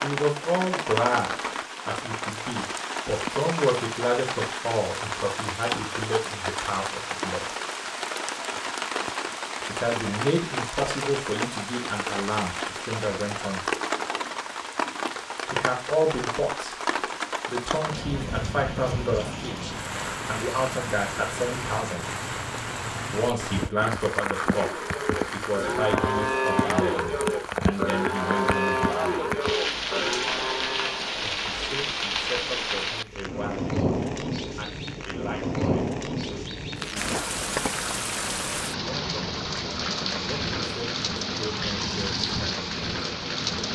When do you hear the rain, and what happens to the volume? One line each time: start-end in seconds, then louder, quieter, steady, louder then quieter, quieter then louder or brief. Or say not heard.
0.0-43.6 steady.